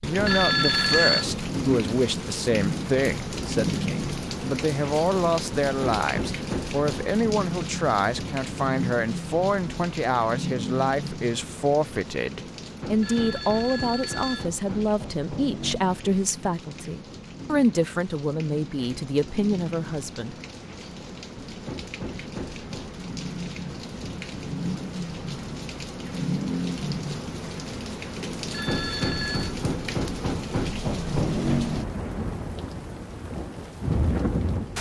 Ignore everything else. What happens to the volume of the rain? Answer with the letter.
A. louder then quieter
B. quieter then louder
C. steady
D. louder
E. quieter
B.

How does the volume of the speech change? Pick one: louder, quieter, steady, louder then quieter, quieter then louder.
steady.